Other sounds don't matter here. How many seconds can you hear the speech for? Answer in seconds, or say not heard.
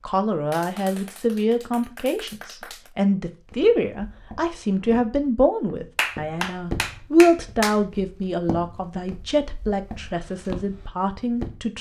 12 s.